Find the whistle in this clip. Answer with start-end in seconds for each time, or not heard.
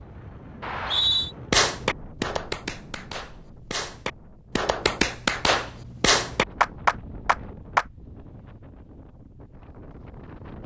0.6-1.4.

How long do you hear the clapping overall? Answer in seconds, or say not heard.
6 s.